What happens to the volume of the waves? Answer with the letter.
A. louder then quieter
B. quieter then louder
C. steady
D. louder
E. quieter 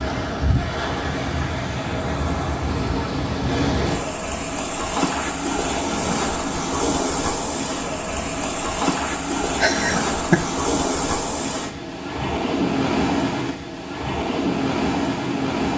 C.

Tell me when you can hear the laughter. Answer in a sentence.
The laughter can be heard from 9.6 to 10.3 s.